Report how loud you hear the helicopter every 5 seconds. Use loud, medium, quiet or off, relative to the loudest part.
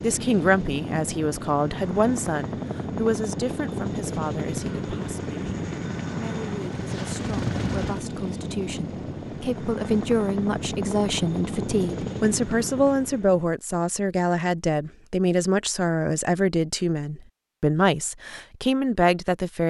loud, loud, loud, off.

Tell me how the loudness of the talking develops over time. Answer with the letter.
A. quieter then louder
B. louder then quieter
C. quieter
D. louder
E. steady
A.